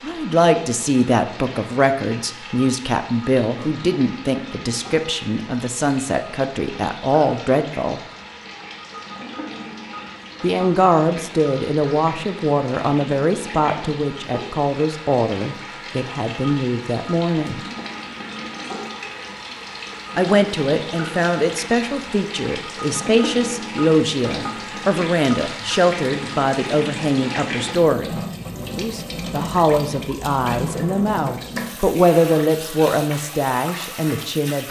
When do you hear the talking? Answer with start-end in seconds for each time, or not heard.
0.0-8.0, 10.4-17.6, 20.1-34.6.